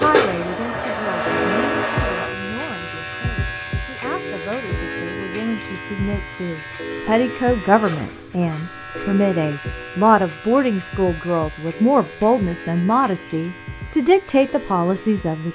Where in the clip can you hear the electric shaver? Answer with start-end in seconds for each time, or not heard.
0.0-15.4.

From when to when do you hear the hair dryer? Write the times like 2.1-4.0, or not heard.
0.1-2.3.